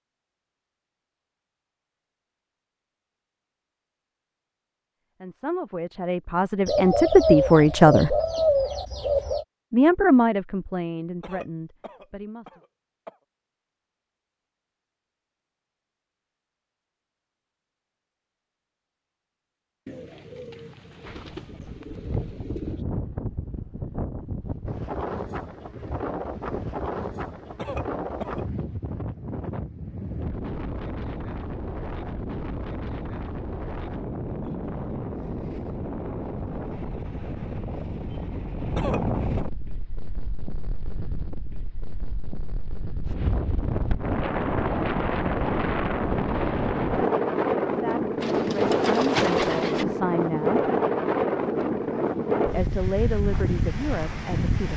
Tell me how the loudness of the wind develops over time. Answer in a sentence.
The volume of the wind goes up.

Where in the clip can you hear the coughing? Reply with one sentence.
You can hear the coughing from 11.2 to 13.2 s, from 27.6 to 28.4 s and from 38.8 to 39.5 s.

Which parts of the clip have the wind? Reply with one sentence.
You can hear the wind from 21.1 to 54.7 s.